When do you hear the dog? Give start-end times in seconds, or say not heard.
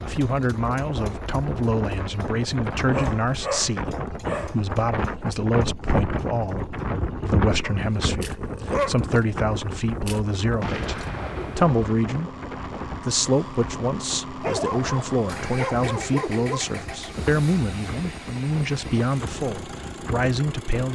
2.8-4.5, 7.6-9.1, 14.4-16.6.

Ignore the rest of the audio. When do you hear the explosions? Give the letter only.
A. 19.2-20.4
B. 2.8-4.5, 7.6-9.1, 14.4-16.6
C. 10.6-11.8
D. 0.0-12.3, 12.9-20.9
C.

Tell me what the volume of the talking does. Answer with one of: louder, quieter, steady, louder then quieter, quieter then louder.
steady.